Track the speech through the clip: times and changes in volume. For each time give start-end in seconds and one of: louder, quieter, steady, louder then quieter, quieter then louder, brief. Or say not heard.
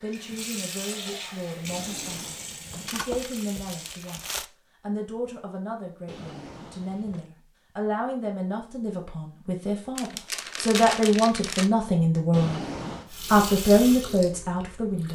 0.0-12.6 louder
13.3-15.1 brief.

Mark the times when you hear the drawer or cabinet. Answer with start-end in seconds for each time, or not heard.
1.6-3.0, 6.0-7.3, 12.3-13.1.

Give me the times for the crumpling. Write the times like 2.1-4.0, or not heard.
2.9-4.5, 9.9-11.7.